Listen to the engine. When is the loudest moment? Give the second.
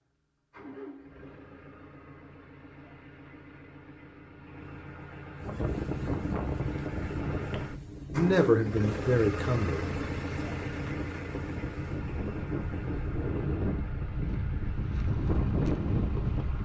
9 s.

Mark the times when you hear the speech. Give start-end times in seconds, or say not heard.
7.5-9.9.